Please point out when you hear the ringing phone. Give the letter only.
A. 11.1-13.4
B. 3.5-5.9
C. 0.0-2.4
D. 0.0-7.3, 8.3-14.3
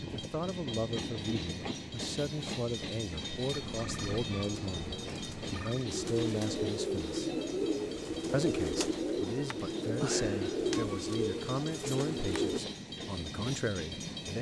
B.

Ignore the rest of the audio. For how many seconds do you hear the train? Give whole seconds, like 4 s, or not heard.
14 s.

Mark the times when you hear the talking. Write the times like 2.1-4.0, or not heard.
0.0-7.3, 8.3-14.3.